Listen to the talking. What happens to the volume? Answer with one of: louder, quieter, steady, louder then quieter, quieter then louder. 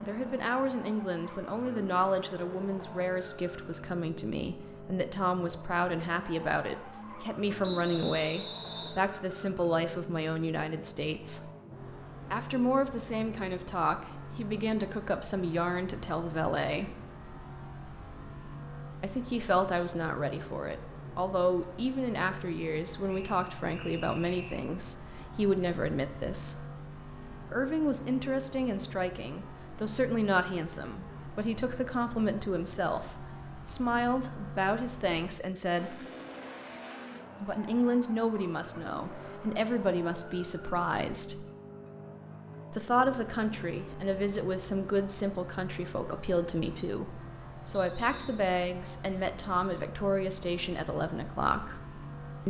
steady.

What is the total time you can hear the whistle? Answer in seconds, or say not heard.
4 s.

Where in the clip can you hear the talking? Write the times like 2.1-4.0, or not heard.
0.0-11.5, 12.3-16.9, 19.0-26.6, 27.5-36.0, 37.4-41.5, 42.7-51.8.